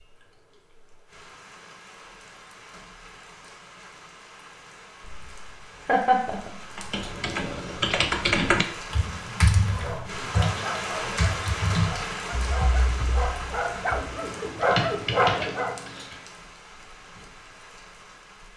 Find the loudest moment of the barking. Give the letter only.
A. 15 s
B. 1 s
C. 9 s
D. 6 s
A.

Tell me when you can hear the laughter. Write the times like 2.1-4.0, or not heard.
5.0-6.8.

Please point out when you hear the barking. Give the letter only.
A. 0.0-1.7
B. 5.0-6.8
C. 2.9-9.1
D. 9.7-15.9
D.